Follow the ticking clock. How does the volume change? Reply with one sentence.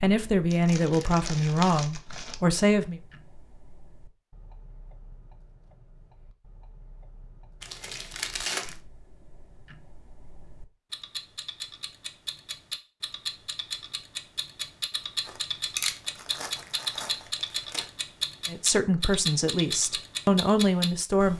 The volume of the ticking clock goes up.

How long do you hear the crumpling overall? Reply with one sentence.
The crumpling can be heard for 6 seconds in total.